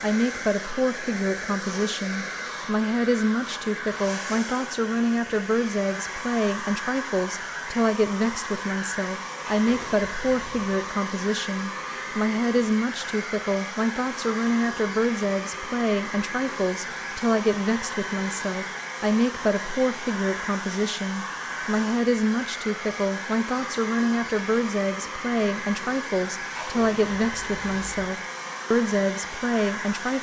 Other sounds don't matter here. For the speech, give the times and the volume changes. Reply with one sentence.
The speech can be heard from 0.0 to 30.1 s, at a steady volume.